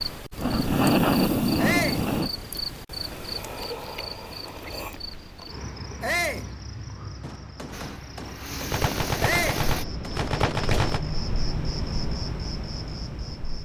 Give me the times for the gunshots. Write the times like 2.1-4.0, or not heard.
7.2-11.0.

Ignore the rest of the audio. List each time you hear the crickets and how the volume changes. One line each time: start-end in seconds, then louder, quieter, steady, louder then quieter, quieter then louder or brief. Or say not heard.
0.0-13.6 quieter then louder.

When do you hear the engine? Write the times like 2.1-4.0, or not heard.
7.7-9.8.